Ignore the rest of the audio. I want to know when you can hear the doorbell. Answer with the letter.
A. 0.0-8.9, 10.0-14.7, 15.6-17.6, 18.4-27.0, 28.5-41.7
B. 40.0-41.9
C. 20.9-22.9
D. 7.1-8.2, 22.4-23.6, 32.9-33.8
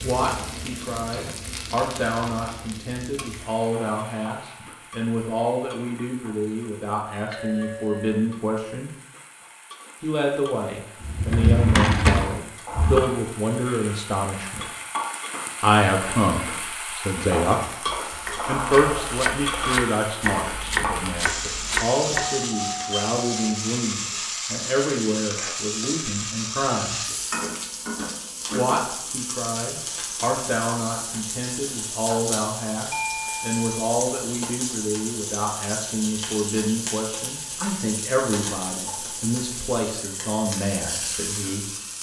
D.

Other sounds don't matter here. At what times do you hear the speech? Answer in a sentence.
You can hear the speech from 0.0 to 8.9 s, from 10.0 to 14.7 s, from 15.6 to 17.6 s, from 18.4 to 27.0 s and from 28.5 to 41.7 s.